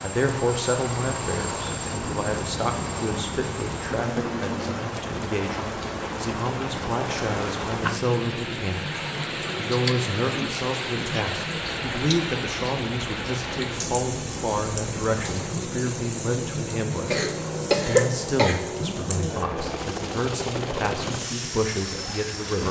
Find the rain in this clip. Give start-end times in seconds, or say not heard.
0.0-22.6.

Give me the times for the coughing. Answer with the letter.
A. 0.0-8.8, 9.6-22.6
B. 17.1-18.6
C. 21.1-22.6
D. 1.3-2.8
B.